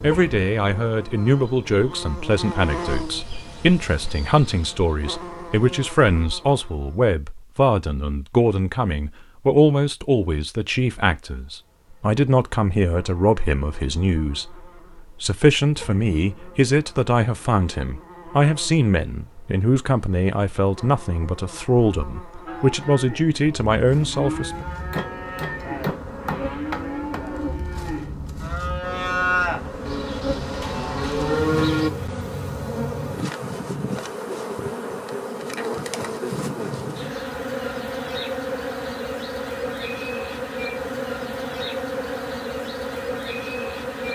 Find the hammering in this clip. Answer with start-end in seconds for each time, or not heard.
24.9-27.2.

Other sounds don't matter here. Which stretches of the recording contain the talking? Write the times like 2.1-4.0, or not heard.
0.0-24.6.